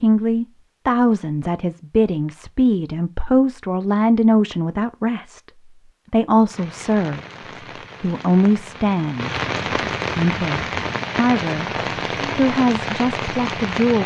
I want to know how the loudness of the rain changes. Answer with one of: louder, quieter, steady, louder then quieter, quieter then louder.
louder.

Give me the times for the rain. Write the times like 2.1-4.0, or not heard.
6.5-14.0.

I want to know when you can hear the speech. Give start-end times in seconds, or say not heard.
0.0-5.4, 6.1-7.2, 8.0-9.3, 10.2-11.7, 12.3-14.0.